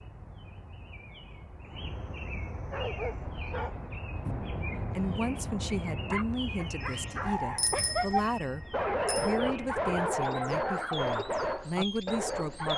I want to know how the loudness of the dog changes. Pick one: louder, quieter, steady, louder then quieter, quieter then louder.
louder.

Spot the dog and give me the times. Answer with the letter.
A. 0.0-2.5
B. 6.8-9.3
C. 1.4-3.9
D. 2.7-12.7
D.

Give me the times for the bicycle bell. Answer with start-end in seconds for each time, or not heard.
6.8-9.3.